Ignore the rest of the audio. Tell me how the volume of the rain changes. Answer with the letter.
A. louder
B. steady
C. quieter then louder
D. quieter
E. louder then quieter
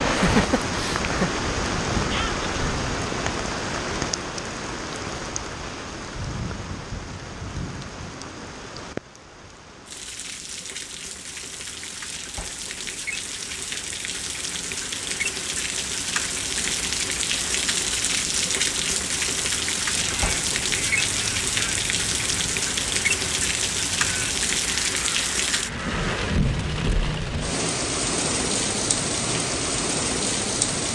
C.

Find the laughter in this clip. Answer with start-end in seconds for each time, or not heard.
0.0-1.3.